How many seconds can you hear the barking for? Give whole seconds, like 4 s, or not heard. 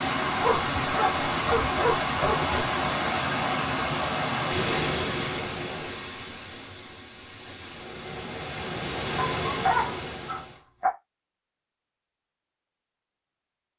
4 s.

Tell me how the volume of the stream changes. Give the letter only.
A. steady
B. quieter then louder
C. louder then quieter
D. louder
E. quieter
B.